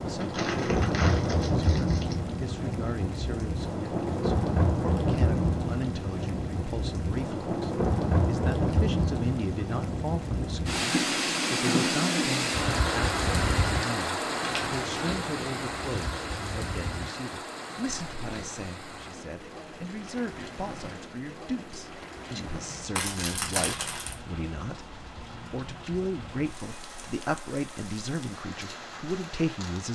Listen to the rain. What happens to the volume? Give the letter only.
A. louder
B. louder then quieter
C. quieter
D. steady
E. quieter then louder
C.